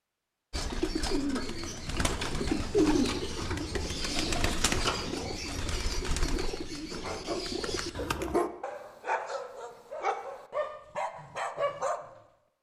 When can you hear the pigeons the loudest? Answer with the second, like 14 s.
3 s.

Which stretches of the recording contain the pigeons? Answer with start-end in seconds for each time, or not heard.
0.5-8.3.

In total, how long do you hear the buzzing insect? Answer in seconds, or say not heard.
not heard.